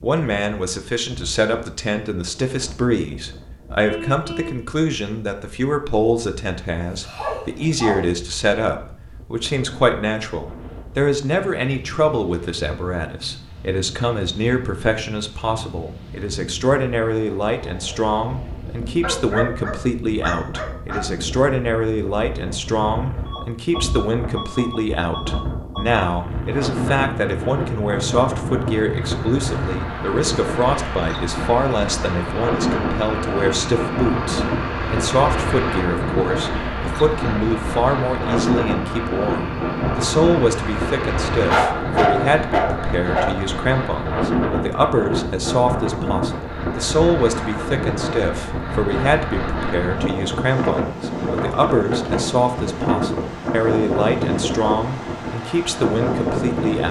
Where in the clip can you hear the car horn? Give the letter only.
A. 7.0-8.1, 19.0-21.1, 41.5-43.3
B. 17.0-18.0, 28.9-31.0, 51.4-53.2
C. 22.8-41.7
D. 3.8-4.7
D.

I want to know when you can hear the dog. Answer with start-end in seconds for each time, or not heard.
7.0-8.1, 19.0-21.1, 41.5-43.3.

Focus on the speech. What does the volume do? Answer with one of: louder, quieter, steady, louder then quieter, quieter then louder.
steady.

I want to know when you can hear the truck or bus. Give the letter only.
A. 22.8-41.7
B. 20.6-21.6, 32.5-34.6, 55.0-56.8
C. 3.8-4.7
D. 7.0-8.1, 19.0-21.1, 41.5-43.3
A.